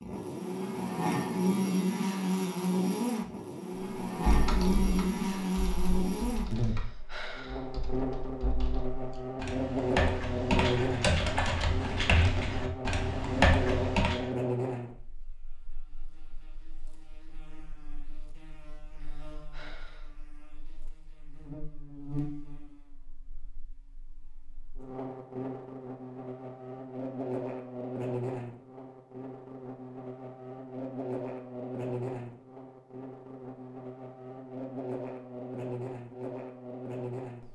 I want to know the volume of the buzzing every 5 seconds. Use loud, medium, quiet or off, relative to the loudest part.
loud, loud, loud, quiet, quiet, medium, medium, medium.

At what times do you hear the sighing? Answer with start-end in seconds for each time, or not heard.
6.5-7.7, 19.0-20.1.